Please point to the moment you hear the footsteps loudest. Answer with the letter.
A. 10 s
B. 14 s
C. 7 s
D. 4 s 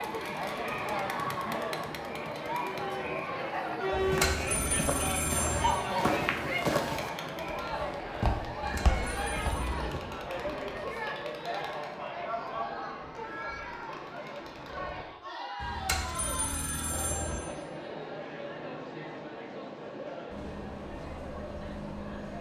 C.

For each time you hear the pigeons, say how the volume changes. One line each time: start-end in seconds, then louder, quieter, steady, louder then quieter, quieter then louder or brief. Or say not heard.
not heard.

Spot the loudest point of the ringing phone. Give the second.
4 s.